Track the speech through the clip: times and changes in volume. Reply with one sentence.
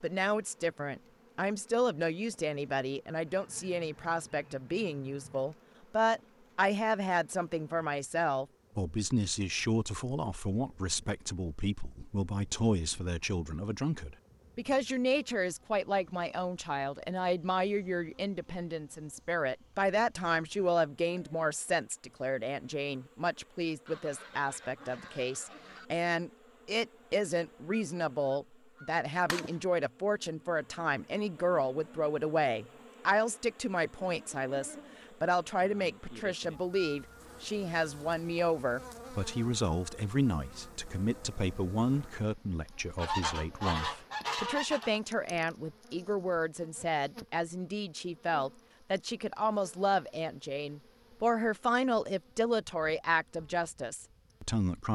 You can hear the speech from 0.0 to 54.9 s, at a steady volume.